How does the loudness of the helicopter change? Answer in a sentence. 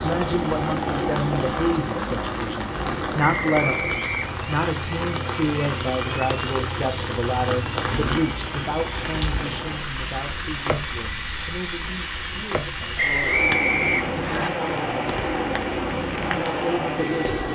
The volume of the helicopter goes down, then up.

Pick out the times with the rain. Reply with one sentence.
The rain can be heard from 0.0 to 17.4 s.